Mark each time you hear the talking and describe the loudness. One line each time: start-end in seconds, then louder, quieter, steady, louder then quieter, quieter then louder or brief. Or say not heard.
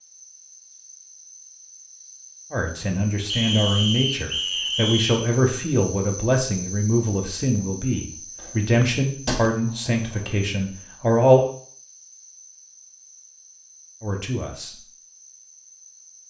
2.5-11.4 steady
14.0-14.8 brief.